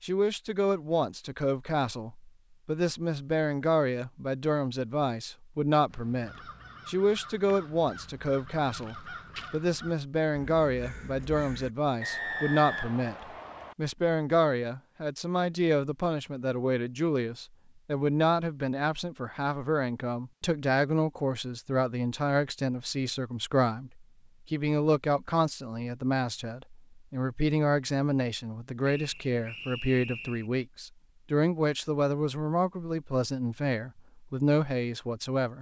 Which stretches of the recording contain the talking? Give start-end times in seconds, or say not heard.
0.0-13.2, 13.8-35.5.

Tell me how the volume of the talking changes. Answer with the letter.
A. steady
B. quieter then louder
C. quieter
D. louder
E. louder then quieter
A.